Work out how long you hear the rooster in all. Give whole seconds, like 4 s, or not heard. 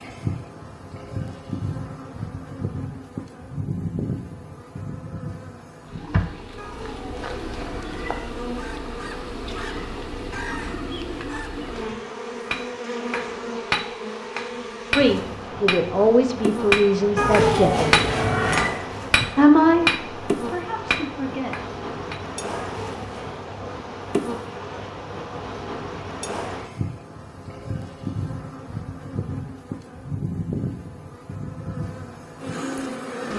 3 s.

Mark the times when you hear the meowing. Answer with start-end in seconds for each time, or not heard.
6.5-8.3, 17.1-18.7, 22.6-23.5.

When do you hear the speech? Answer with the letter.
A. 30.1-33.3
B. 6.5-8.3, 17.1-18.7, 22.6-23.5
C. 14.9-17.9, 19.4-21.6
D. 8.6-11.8
C.